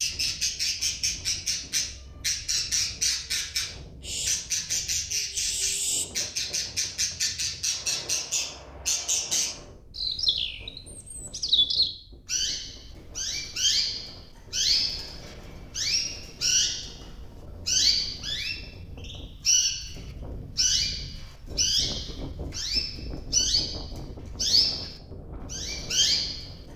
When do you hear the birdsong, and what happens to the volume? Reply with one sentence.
The birdsong can be heard from 0.0 to 26.6 s, at a steady volume.